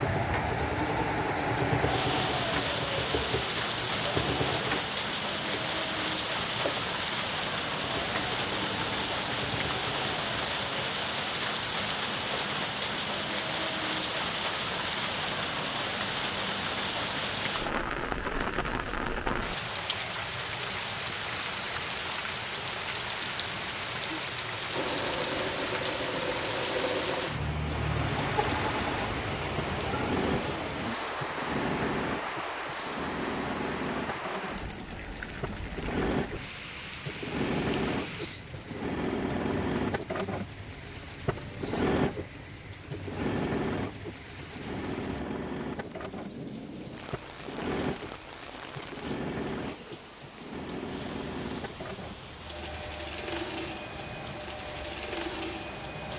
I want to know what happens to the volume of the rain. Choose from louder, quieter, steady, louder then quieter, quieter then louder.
quieter.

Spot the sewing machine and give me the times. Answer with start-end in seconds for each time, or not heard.
0.0-10.9, 24.7-56.1.